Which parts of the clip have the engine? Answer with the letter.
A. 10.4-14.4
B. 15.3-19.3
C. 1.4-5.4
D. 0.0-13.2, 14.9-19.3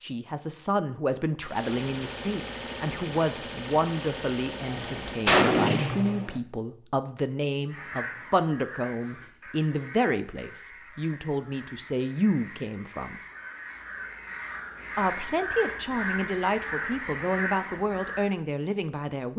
C.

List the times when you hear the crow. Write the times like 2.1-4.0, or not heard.
7.7-18.2.